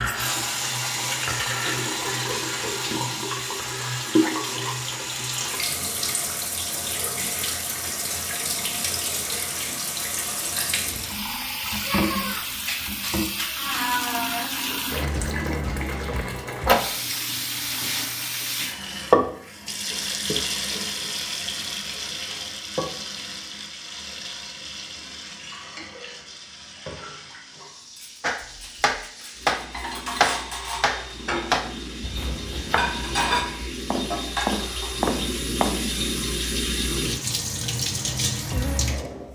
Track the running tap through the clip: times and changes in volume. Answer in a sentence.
You can hear the running tap from 0.0 to 39.2 s, getting quieter then louder.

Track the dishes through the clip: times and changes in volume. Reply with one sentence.
You can hear the dishes from 27.6 to 34.9 s, getting louder.